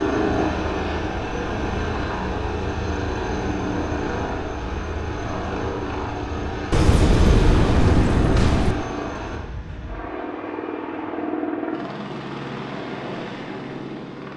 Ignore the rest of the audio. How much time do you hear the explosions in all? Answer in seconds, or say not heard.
2 s.